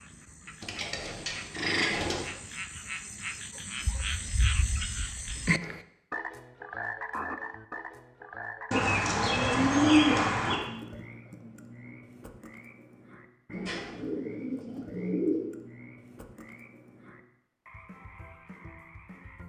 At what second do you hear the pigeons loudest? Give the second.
10 s.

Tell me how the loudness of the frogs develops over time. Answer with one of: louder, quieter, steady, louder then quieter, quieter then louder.
louder then quieter.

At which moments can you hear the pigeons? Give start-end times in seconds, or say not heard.
0.6-2.2, 8.7-10.6, 13.5-15.5.